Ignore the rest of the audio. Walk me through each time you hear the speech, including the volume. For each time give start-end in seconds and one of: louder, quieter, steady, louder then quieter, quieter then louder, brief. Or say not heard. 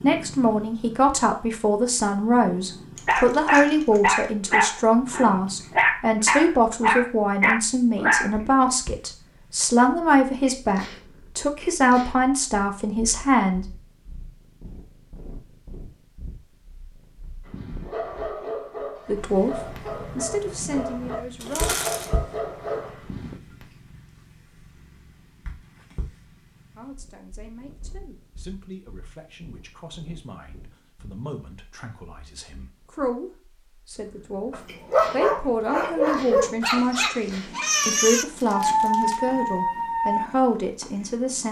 0.0-13.7 steady
19.1-21.8 brief
26.8-41.4 louder.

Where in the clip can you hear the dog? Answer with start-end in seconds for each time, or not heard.
3.0-8.5, 17.4-23.4, 34.5-40.3.